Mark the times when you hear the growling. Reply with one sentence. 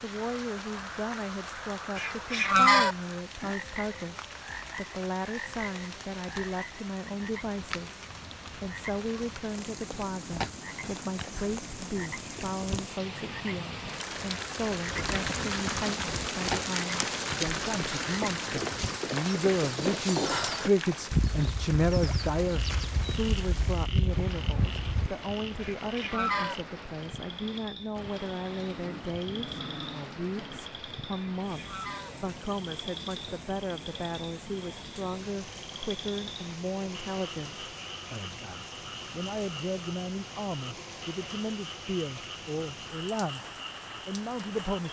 You can hear the growling from 28.6 to 30.6 s.